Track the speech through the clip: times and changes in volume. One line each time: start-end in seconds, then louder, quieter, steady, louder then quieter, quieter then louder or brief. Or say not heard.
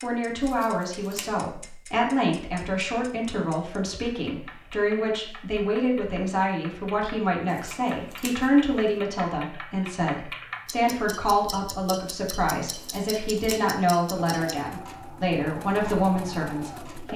0.0-17.1 steady.